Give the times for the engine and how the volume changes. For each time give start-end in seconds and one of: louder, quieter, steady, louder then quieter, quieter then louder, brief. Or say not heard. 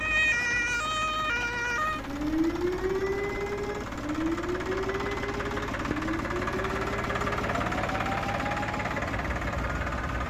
0.0-10.2 louder.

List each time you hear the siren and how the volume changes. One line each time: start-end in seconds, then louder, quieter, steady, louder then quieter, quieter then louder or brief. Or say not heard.
0.0-10.2 quieter.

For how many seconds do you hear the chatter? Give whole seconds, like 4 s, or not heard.
not heard.